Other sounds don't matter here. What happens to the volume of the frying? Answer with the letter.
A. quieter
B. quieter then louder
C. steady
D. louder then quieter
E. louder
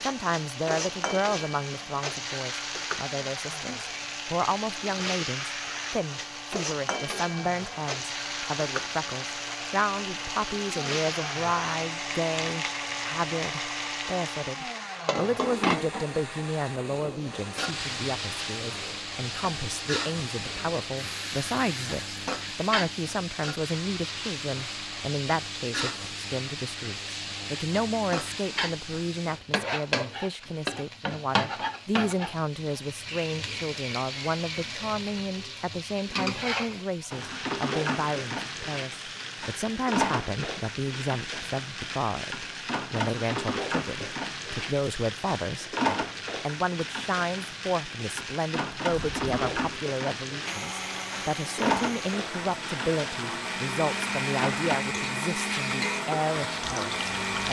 C.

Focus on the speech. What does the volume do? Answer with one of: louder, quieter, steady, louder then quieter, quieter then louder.
steady.